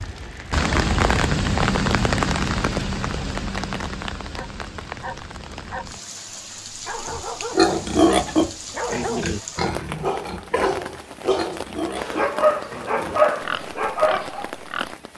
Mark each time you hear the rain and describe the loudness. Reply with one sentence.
The rain can be heard from 0.0 to 15.1 s, getting quieter.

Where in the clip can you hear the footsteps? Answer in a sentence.
You can't hear the footsteps here.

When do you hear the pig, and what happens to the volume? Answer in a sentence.
The pig can be heard from 7.1 to 14.9 s, getting quieter.